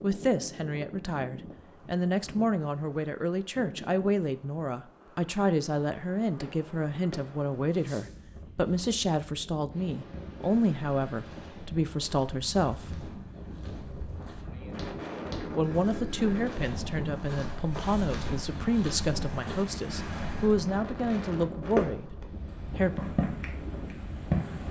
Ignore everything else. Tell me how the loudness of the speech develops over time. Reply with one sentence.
The volume of the speech stays about the same.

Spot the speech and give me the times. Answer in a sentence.
You can hear the speech from 0.0 to 13.0 s and from 15.5 to 23.0 s.